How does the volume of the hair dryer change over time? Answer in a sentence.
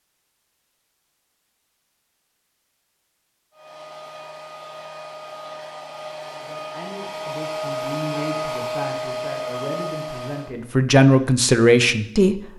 The volume of the hair dryer goes up.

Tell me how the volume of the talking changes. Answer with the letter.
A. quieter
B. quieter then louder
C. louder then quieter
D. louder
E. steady
D.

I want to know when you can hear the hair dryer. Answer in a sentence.
The hair dryer can be heard from 3.5 to 10.6 s.